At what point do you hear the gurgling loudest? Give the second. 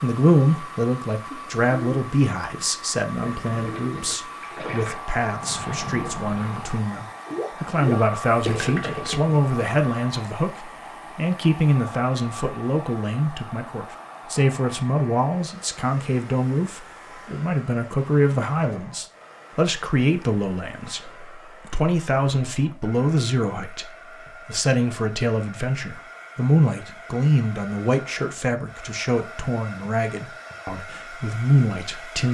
9 s.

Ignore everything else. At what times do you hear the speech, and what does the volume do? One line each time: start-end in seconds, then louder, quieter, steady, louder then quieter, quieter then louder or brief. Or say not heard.
0.0-32.2 steady.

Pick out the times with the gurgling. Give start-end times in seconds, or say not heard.
3.2-9.3.